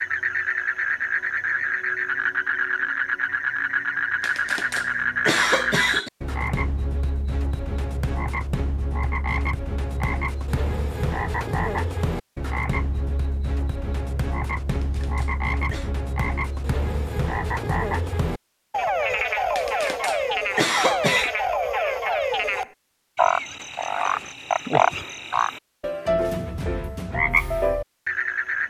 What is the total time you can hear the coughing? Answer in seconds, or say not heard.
5 s.